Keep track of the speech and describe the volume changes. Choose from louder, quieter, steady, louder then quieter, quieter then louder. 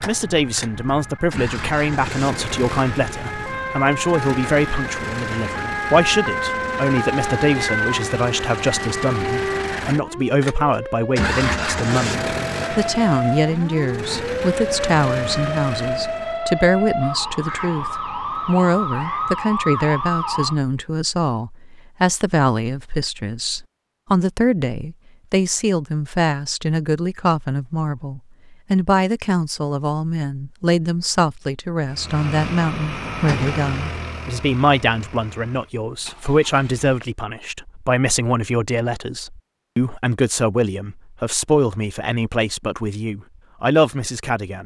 steady.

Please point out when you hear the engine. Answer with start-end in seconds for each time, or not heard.
0.0-16.4, 31.9-37.0.